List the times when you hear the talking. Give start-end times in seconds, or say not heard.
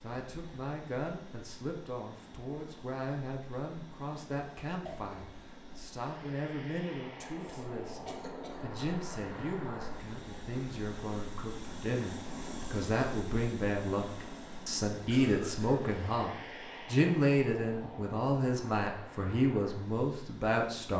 0.0-20.9.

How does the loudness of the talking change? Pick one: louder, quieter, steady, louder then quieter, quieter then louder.
louder.